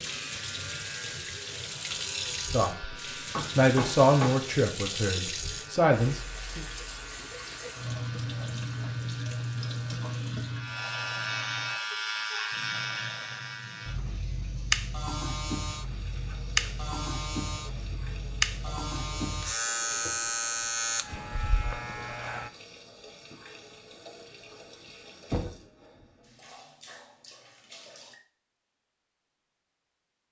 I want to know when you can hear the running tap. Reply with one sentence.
You can hear the running tap from 0.0 to 28.2 s.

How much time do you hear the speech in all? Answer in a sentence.
You can hear the speech for 4 seconds altogether.